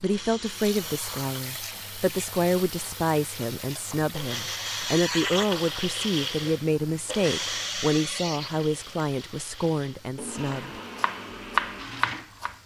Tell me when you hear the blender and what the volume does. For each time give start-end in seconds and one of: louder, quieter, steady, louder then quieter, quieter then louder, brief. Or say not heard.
0.0-12.5 louder then quieter.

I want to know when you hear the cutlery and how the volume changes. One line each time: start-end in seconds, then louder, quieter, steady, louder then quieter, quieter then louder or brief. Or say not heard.
not heard.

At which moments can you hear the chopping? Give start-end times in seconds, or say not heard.
10.5-12.6.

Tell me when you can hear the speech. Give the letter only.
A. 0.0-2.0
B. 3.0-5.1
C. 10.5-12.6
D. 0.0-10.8
D.